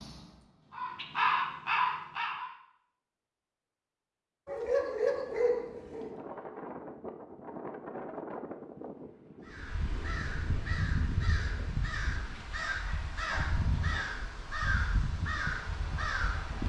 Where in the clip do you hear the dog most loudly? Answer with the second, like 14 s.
5 s.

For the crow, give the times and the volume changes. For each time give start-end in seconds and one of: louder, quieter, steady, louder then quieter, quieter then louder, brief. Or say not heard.
0.0-2.5 brief
9.4-16.6 steady.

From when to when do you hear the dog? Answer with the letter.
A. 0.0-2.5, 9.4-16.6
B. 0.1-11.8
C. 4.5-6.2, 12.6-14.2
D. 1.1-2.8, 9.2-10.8
C.